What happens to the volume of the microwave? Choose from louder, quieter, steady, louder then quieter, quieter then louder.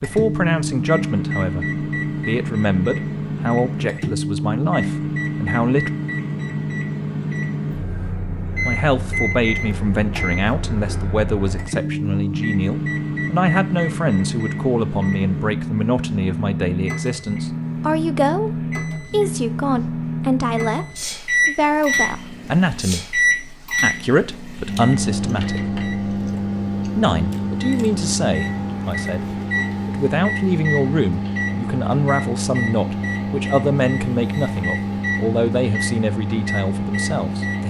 steady.